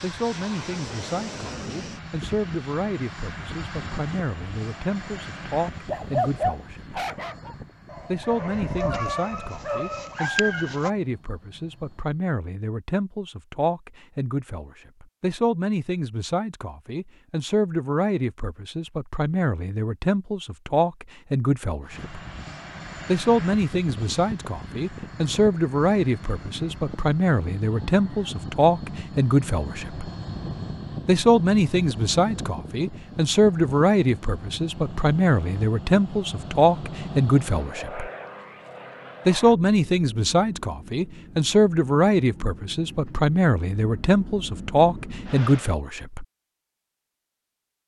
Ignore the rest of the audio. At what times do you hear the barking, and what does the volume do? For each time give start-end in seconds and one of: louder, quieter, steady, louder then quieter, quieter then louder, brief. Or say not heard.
5.8-10.9 quieter then louder.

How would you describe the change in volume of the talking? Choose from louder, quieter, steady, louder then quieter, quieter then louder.
louder.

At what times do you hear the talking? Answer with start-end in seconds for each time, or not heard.
0.0-7.0, 8.1-22.2, 23.1-30.1, 31.1-38.1, 39.2-46.2.